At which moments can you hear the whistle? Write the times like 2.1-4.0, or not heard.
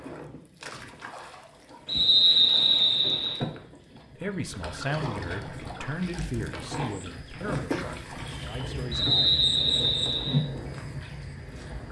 1.9-3.4, 8.9-10.4.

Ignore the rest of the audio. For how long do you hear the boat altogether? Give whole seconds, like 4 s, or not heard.
12 s.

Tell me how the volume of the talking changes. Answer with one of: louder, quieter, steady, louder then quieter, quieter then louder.
quieter.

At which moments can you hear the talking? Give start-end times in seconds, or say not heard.
4.2-9.4.